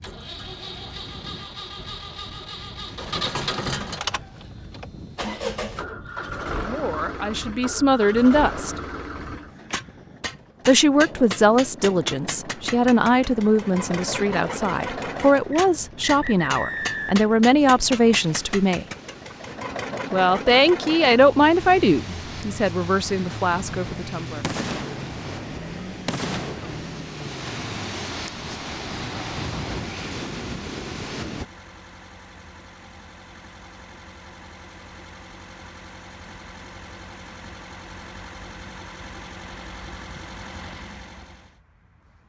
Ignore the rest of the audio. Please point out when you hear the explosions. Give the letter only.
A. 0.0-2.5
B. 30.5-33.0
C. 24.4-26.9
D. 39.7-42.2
C.